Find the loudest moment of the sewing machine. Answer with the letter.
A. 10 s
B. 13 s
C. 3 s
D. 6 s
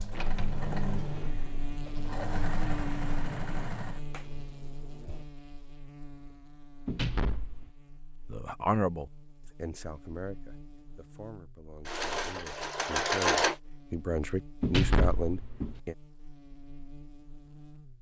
B.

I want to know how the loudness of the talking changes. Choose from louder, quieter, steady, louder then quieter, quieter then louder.
quieter then louder.